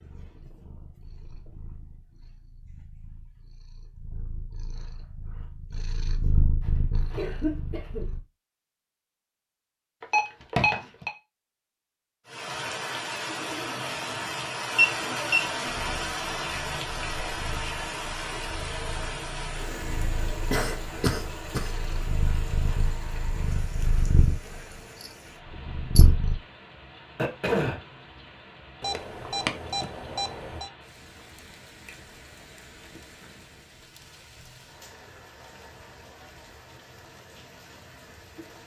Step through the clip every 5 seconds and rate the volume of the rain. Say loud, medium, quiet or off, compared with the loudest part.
off, off, loud, loud, medium, quiet, quiet, quiet.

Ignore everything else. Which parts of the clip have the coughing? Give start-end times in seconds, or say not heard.
6.7-8.1, 20.3-21.7, 27.1-27.8.